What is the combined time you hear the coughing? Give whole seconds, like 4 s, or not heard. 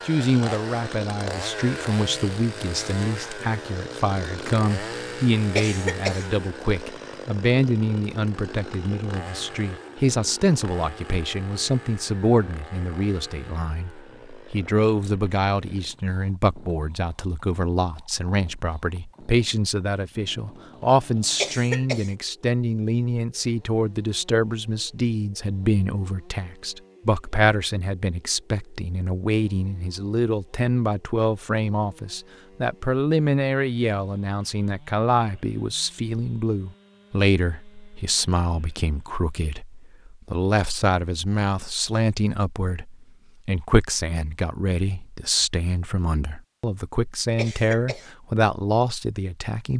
2 s.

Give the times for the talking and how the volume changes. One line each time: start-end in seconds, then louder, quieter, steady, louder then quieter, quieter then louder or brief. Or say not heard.
0.1-49.7 steady.